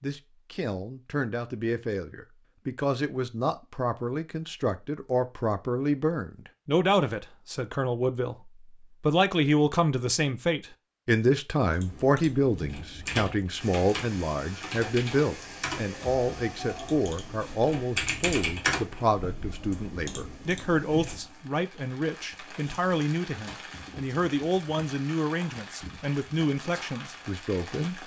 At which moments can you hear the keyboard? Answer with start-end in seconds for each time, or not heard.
11.8-21.2.